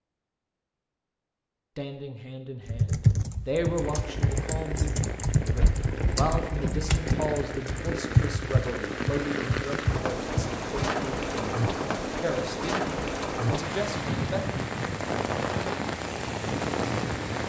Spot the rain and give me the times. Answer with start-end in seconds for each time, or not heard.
3.6-17.4.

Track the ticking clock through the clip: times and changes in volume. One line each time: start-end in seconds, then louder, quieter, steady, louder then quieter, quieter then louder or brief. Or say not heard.
not heard.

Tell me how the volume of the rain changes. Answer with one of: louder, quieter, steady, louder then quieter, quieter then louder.
louder.